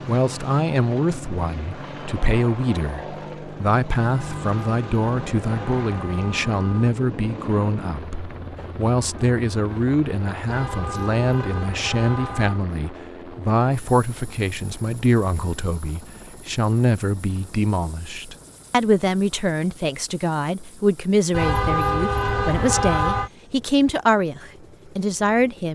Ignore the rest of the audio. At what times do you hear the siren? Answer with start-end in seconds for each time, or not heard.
not heard.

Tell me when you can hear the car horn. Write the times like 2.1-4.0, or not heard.
4.1-7.0, 10.4-12.6, 21.3-23.3.